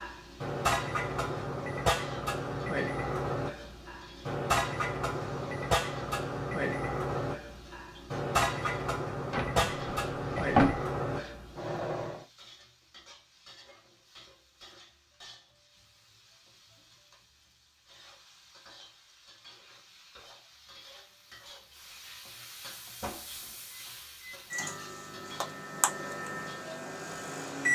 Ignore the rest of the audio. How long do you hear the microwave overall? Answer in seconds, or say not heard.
17 s.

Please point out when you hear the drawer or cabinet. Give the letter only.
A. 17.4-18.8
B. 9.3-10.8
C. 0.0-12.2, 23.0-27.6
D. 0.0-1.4
B.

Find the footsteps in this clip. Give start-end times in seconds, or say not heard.
not heard.